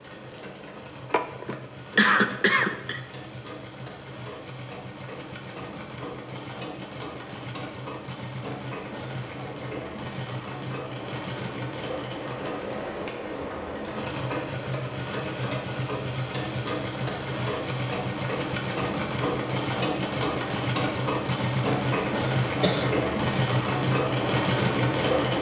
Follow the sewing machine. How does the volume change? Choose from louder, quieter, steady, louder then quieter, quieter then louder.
louder.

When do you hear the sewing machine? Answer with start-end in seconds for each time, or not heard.
0.0-25.3.